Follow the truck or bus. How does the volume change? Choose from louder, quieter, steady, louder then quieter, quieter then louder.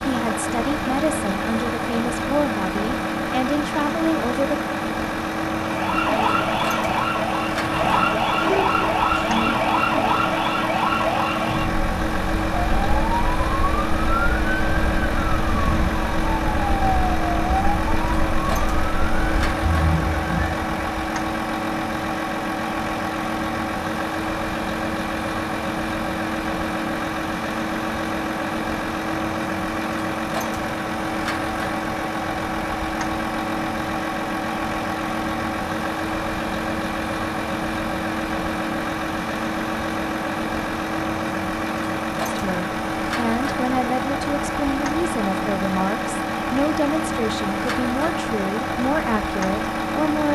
steady.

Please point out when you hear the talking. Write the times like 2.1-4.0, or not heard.
0.1-4.7, 42.2-50.3.